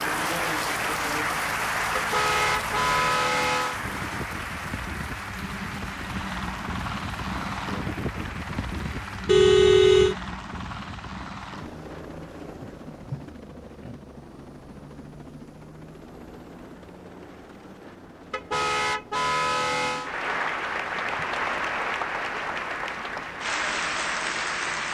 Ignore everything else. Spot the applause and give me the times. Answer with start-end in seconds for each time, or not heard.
0.0-9.3, 20.0-24.8.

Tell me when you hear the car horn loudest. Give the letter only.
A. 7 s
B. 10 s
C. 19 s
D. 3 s
B.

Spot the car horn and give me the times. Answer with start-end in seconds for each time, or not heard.
1.9-3.8, 9.2-10.2, 18.3-20.1.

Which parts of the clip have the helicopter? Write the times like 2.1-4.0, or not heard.
0.0-24.8.